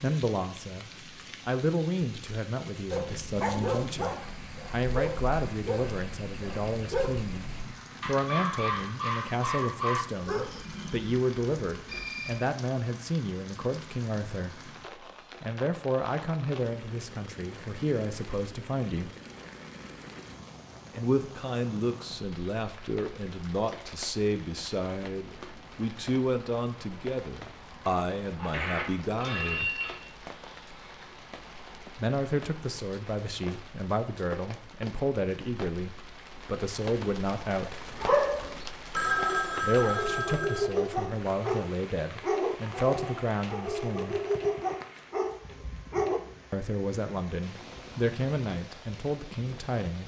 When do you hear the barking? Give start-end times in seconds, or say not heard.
2.9-11.2, 37.9-46.2.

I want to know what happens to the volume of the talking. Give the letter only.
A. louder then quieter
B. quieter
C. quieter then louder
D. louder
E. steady
E.